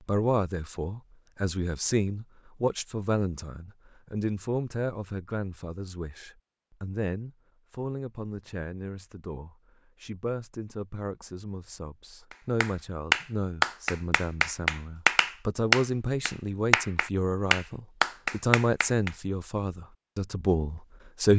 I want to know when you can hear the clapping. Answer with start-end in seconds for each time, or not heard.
12.3-19.1.